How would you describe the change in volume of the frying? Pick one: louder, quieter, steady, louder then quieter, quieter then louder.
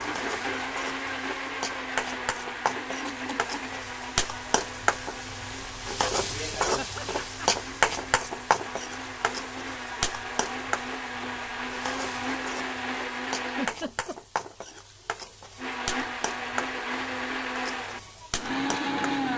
louder then quieter.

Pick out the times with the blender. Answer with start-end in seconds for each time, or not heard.
0.0-13.8, 15.6-19.3.